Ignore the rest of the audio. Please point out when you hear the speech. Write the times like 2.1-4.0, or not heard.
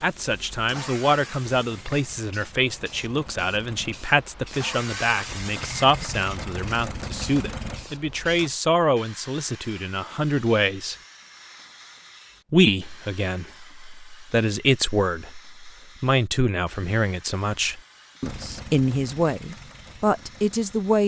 0.0-10.9, 12.5-21.0.